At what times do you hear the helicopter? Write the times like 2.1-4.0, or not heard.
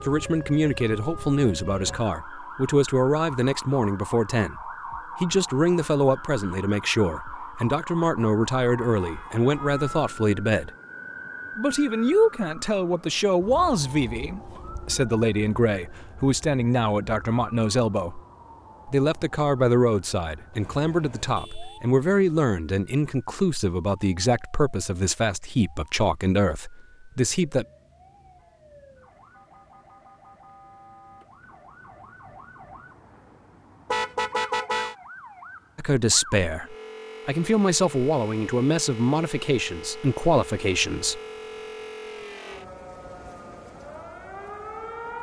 not heard.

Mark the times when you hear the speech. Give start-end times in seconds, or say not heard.
0.0-10.7, 11.6-18.2, 18.9-27.6, 35.8-41.2.